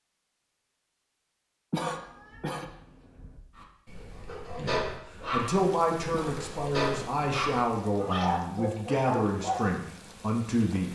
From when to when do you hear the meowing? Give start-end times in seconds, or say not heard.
1.9-3.4, 7.9-9.0.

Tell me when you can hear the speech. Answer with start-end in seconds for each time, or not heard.
4.5-10.9.